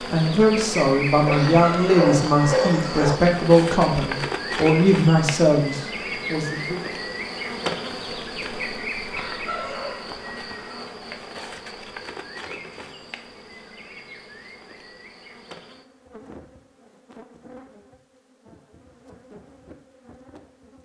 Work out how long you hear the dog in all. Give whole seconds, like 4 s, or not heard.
2 s.